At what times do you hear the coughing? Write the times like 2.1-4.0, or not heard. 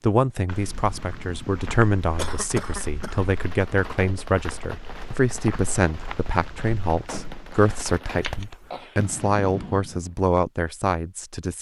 2.1-3.2, 8.1-9.1.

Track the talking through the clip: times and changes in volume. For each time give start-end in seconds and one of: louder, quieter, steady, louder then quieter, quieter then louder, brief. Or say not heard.
0.0-11.5 steady.